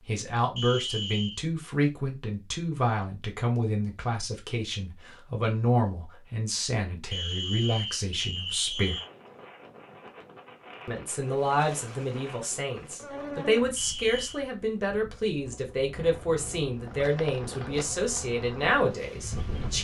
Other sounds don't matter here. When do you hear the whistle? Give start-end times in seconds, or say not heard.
0.6-1.4, 7.1-9.1, 13.8-14.4.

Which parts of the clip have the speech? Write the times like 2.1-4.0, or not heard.
0.1-8.9, 10.8-19.7.